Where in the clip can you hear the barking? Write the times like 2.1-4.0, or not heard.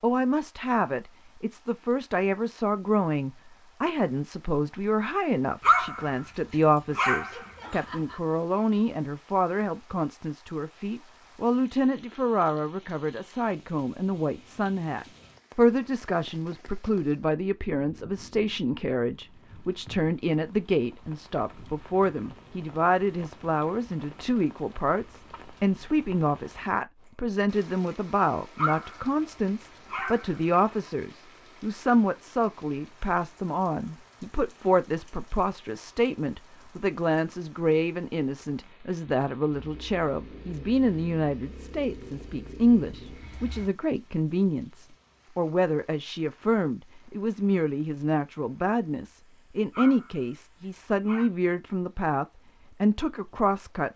5.6-6.2, 7.0-8.2, 28.6-30.9, 49.7-51.3.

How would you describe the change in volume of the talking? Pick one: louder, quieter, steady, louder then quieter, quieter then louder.
steady.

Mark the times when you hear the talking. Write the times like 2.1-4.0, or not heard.
0.0-53.9.